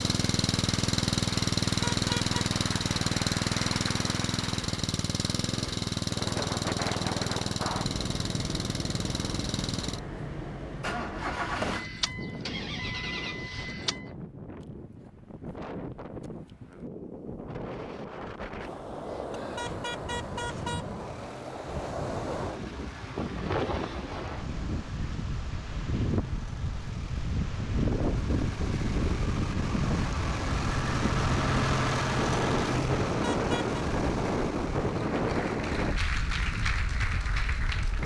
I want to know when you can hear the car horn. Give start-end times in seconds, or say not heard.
1.8-2.4, 19.6-20.9, 33.2-33.8.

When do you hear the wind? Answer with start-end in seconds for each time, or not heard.
6.0-38.0.